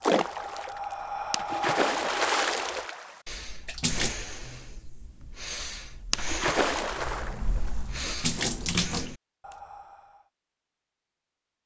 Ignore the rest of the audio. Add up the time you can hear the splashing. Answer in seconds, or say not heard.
7 s.